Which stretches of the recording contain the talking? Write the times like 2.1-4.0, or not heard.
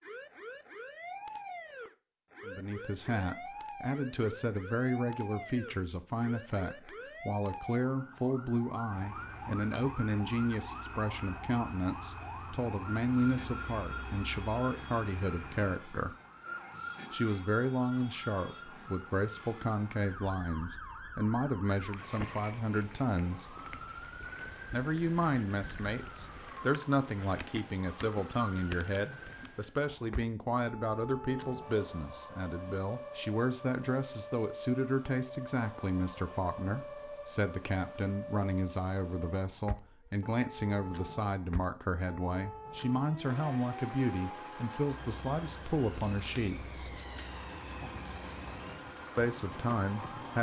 2.5-16.1, 17.1-23.6, 24.7-47.0, 49.1-50.3.